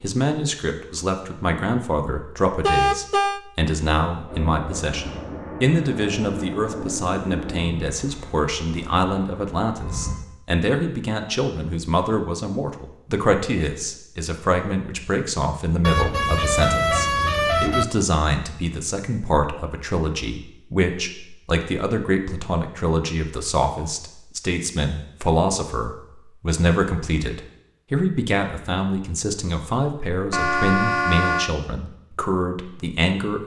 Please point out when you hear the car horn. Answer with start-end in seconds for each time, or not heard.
2.6-3.4, 15.8-17.9, 30.3-31.5.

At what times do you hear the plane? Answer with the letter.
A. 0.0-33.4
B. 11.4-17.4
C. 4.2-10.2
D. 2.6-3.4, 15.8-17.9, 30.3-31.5
C.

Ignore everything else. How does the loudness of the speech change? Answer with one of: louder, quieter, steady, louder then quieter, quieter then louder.
steady.